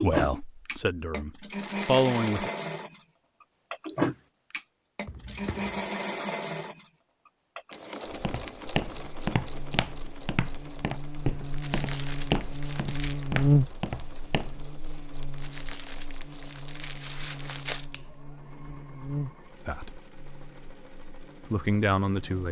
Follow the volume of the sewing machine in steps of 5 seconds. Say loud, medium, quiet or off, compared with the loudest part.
loud, medium, quiet, quiet, quiet.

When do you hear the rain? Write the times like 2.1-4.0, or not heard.
not heard.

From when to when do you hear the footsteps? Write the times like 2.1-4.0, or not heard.
8.1-14.7.